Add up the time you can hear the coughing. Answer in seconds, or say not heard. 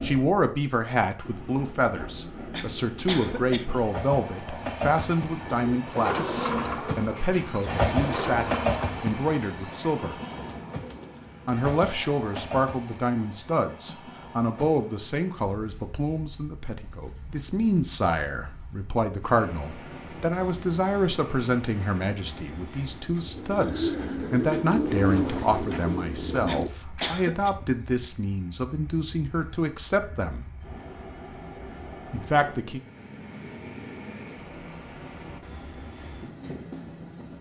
2 s.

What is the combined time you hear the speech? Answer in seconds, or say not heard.
30 s.